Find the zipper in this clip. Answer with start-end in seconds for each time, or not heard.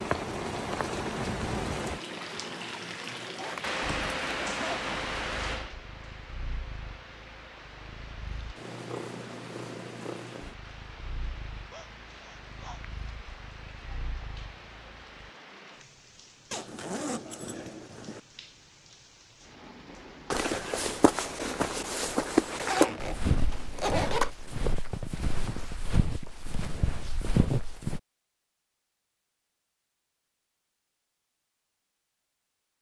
3.4-5.0, 16.5-18.2, 22.6-24.3.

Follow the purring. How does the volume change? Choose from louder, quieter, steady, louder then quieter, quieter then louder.
louder then quieter.